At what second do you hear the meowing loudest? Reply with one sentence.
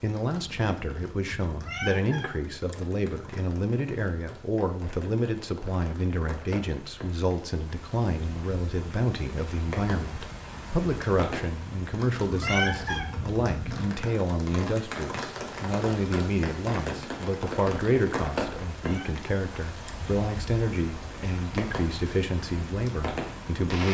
The loudest moment of the meowing is at 13 seconds.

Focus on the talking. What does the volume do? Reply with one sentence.
The volume of the talking stays about the same.